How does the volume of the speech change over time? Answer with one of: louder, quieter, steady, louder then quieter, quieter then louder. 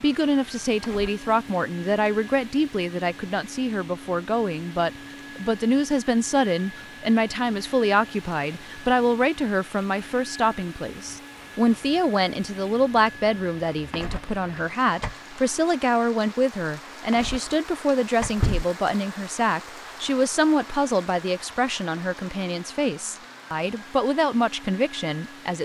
steady.